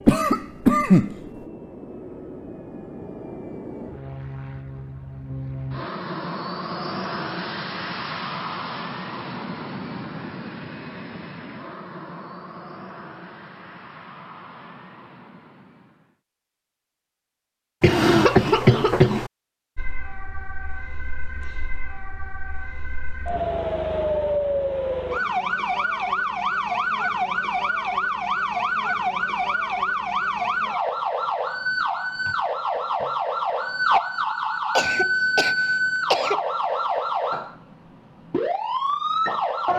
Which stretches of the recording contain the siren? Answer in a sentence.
You can hear the siren from 19.8 to 39.7 s.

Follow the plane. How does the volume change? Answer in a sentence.
The volume of the plane goes up, then down.